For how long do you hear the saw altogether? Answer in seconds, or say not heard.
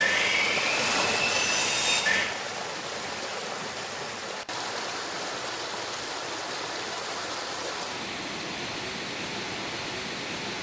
2 s.